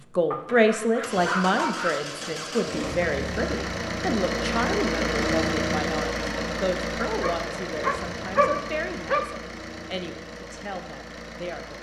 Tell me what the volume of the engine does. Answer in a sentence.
The volume of the engine goes up, then down.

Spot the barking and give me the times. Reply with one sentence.
You can hear the barking from 0.3 to 2.0 s and from 7.2 to 9.3 s.